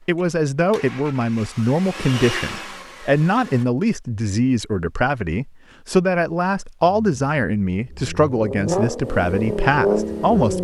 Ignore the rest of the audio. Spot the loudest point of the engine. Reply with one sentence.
The volume of the engine peaks at 10 seconds.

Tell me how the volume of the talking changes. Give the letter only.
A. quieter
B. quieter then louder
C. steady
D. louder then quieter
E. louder
C.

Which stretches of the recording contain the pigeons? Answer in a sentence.
The pigeons can't be heard in this clip.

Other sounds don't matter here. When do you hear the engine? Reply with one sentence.
You can hear the engine from 0.1 to 3.6 s and from 6.8 to 10.6 s.